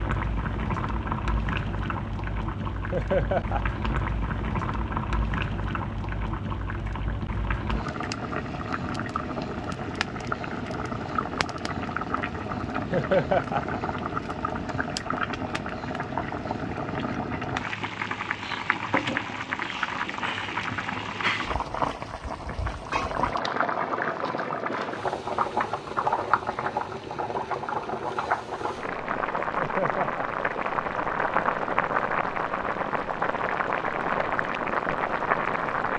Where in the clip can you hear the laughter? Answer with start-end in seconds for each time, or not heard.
2.9-3.6, 12.9-13.8, 29.6-30.3.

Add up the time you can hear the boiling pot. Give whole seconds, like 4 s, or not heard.
36 s.